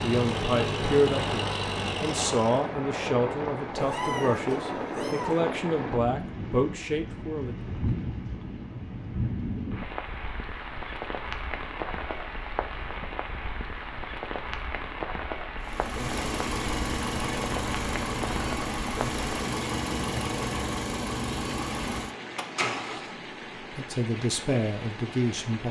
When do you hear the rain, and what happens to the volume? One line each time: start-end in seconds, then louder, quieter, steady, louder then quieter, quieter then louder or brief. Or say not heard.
0.0-25.6 quieter.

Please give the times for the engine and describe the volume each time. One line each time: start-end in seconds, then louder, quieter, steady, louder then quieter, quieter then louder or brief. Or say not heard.
0.0-2.6 brief
15.6-23.1 steady.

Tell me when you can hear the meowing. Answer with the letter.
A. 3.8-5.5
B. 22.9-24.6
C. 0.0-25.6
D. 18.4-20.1
A.